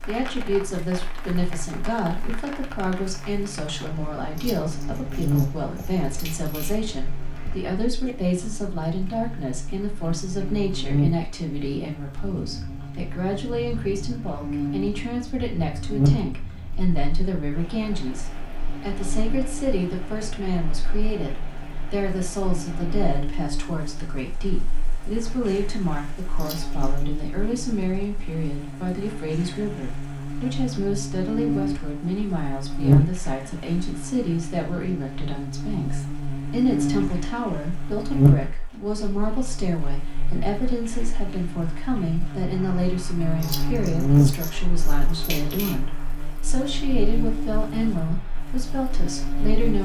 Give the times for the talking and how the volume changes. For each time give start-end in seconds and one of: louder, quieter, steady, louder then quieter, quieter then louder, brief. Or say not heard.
0.1-49.8 steady.